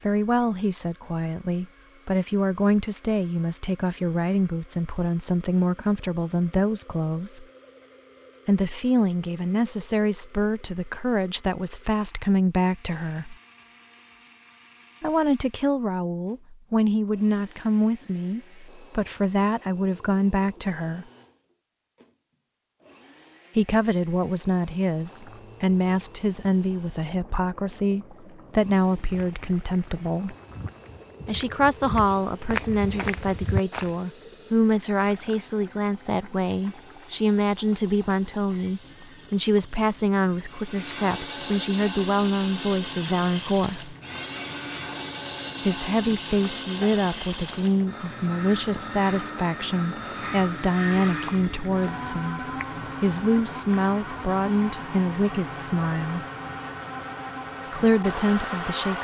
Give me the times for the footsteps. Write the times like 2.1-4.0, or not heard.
28.8-34.1.